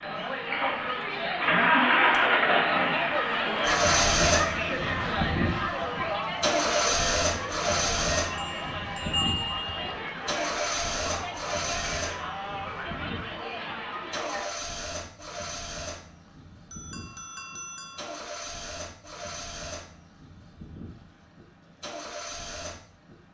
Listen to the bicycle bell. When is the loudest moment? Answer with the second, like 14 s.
9 s.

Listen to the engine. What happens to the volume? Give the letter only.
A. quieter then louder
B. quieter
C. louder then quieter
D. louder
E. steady
B.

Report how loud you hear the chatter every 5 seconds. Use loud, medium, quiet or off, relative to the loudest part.
loud, loud, medium, off, off.